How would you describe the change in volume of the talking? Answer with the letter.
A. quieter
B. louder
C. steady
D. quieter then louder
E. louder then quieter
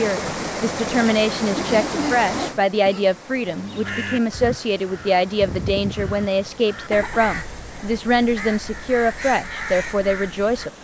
C.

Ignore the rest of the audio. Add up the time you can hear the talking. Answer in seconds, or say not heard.
11 s.